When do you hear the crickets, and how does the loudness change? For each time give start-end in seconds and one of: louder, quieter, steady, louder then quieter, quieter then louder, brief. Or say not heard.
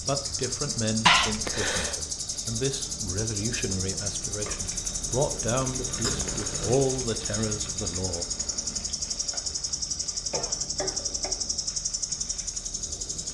0.0-13.2 steady.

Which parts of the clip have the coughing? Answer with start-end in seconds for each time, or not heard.
1.1-1.9, 6.0-6.8, 10.1-11.3.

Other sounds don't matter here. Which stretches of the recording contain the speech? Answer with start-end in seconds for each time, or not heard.
0.0-8.2.